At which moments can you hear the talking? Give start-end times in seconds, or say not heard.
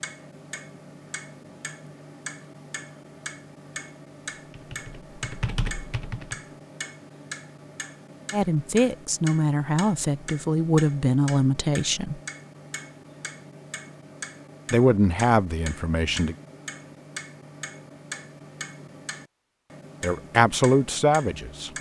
8.3-12.2, 14.7-16.4, 20.0-21.7.